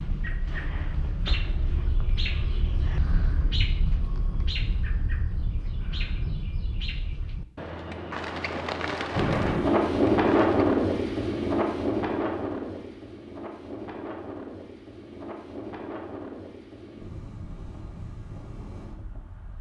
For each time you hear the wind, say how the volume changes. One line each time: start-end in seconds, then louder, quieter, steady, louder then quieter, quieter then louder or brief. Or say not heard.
9.1-19.5 quieter.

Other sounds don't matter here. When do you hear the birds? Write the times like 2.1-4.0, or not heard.
0.0-10.6.